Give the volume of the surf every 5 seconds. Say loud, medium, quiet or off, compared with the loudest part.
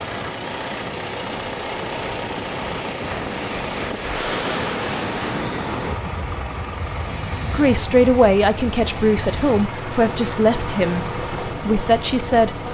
loud, loud, medium.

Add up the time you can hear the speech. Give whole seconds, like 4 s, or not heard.
5 s.